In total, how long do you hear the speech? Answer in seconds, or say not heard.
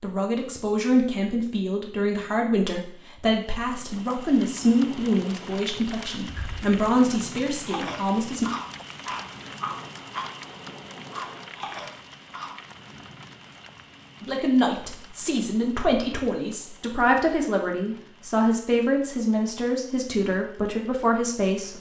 16 s.